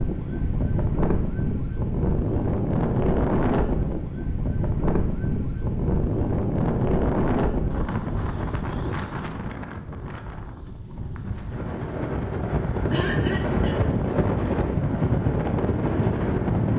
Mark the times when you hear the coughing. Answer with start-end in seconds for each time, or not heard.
12.9-13.9.